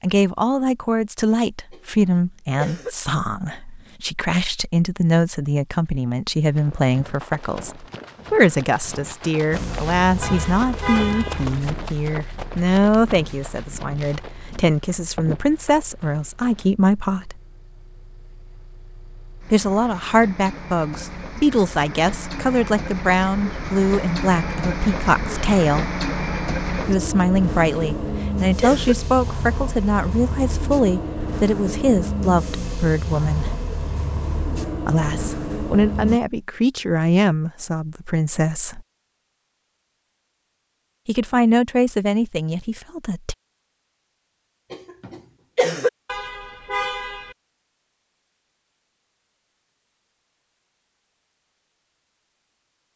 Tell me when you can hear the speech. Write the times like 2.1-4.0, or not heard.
0.0-17.4, 19.5-25.9, 26.9-33.5, 34.9-38.9, 41.0-43.4.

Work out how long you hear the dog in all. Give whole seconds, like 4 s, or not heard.
not heard.